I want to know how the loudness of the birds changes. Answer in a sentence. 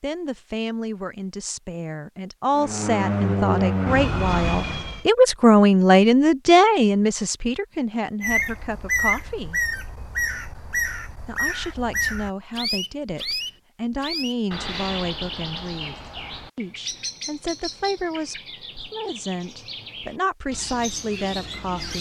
The loudness of the birds goes down.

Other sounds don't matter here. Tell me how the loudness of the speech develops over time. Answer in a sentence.
The loudness of the speech goes up, then down.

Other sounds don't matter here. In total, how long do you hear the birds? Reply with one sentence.
You can hear the birds for 14 seconds altogether.